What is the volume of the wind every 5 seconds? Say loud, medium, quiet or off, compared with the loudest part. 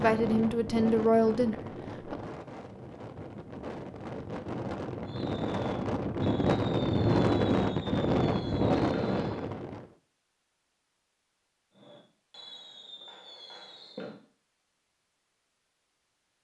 medium, loud, off, off.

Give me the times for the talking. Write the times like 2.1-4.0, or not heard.
0.0-2.1.